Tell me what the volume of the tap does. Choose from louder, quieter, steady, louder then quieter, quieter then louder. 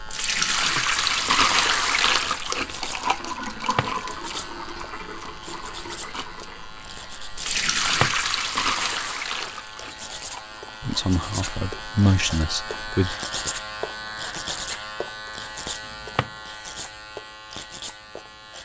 quieter then louder.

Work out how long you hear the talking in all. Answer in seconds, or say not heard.
2 s.